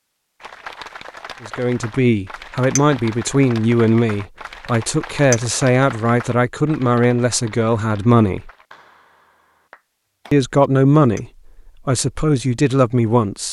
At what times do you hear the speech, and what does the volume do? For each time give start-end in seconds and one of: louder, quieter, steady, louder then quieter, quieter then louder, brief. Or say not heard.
1.4-8.5 steady
10.3-11.2 brief
11.8-13.4 brief.